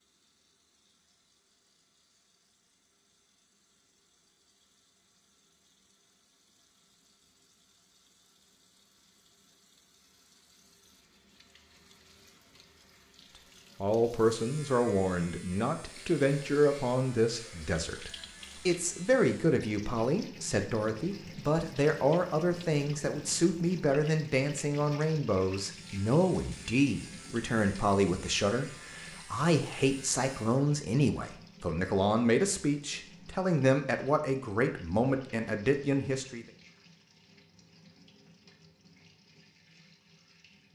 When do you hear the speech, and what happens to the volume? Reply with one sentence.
The speech can be heard from 13.8 to 36.5 s, at a steady volume.